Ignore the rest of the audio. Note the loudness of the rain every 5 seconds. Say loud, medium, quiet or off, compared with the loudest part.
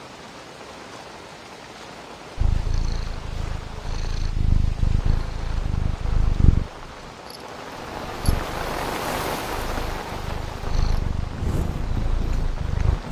medium, loud, medium.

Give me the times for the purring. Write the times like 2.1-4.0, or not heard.
2.4-13.0.